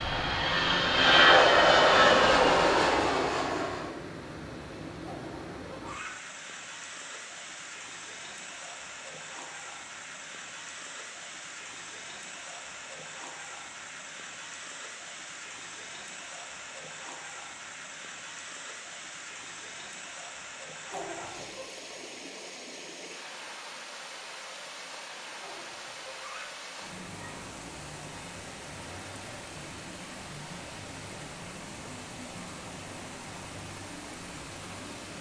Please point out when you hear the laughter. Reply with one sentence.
The laughter can be heard from 5.0 to 6.2 s, from 20.9 to 21.6 s and from 25.4 to 26.5 s.